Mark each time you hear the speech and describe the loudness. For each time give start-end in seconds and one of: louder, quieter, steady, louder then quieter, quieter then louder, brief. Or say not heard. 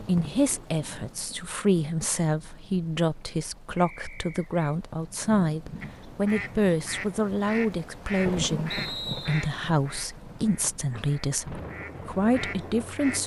0.0-13.2 steady.